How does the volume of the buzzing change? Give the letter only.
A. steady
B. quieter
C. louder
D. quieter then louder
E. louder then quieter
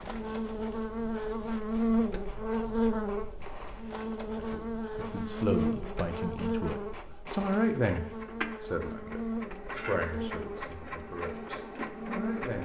B.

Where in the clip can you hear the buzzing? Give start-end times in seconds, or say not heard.
0.0-12.4.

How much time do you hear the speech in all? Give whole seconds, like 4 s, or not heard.
8 s.